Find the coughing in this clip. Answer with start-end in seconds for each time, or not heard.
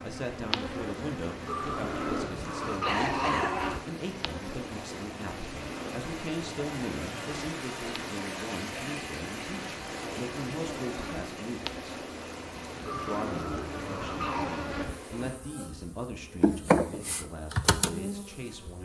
2.6-3.6.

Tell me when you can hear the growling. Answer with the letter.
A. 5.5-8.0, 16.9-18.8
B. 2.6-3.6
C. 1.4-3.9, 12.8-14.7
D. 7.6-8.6
C.